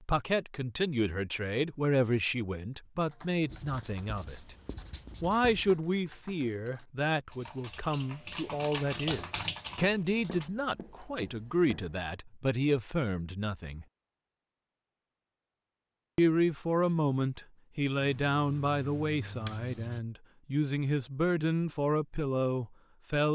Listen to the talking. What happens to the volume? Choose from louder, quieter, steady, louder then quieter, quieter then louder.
steady.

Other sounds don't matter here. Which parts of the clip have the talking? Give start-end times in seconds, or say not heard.
0.0-4.5, 5.2-13.8, 16.1-23.3.